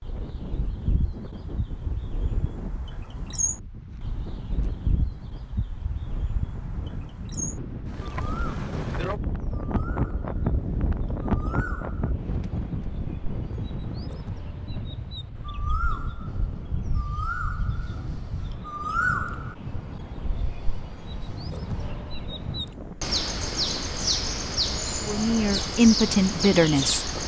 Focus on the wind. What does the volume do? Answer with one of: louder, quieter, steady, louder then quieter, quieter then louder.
louder then quieter.